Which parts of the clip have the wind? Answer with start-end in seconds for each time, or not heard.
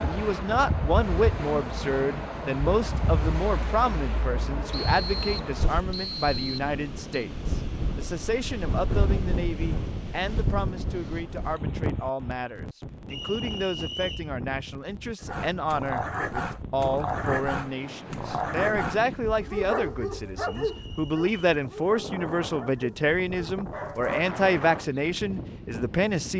0.0-26.3.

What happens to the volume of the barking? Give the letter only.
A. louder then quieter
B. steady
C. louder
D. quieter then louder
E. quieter
E.